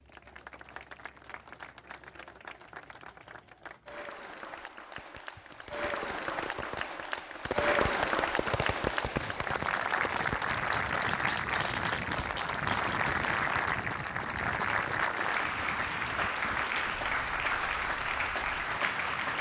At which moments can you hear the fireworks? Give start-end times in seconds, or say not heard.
5.0-13.6.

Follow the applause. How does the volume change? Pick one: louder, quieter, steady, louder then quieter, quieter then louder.
louder.